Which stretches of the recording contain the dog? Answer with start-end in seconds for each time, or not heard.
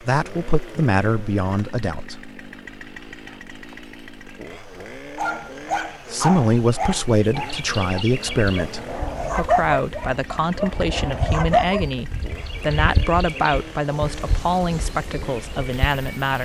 5.2-11.8.